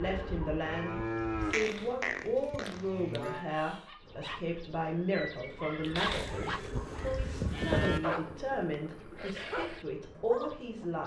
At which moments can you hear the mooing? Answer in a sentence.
The mooing can be heard from 0.7 to 3.5 s and from 6.1 to 8.0 s.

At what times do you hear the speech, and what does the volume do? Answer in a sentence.
The speech can be heard from 0.0 to 11.0 s, at a steady volume.